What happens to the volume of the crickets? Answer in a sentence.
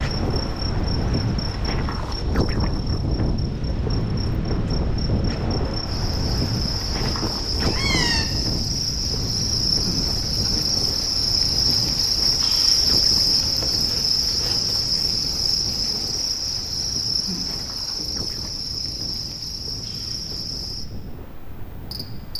The loudness of the crickets goes up, then down.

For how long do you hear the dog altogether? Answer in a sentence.
You can't hear the dog here.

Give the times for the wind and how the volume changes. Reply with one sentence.
You can hear the wind from 0.0 to 22.3 s, getting quieter.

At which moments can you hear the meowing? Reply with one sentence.
The meowing can be heard from 7.0 to 8.2 s.